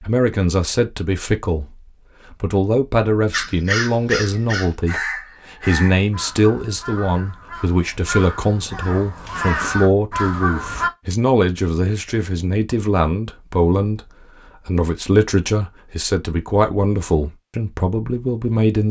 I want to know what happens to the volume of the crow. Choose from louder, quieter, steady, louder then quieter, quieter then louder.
quieter then louder.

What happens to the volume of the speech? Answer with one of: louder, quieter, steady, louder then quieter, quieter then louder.
steady.